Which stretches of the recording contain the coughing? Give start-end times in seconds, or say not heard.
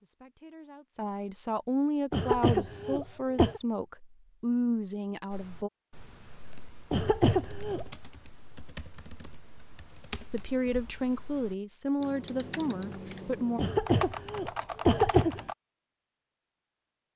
2.1-3.6, 6.9-7.8, 13.6-15.4.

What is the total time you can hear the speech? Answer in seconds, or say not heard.
9 s.